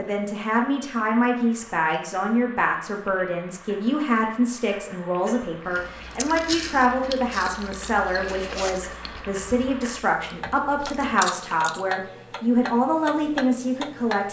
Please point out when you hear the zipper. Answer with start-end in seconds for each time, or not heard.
8.2-8.9.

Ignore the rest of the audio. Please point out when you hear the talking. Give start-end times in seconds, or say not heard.
0.0-14.2.